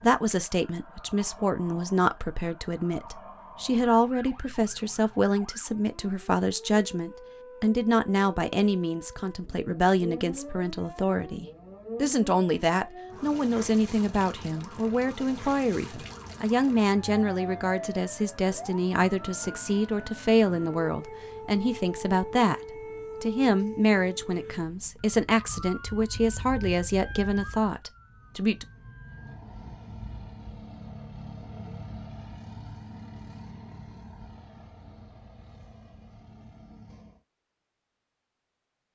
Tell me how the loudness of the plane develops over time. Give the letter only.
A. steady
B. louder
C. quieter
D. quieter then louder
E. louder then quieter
C.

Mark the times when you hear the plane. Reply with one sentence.
You can hear the plane from 29.1 to 37.2 s.